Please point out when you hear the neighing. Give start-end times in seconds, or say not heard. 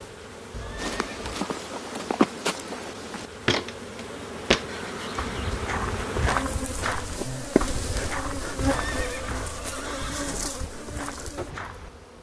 0.5-1.4, 4.7-5.6, 8.6-10.5.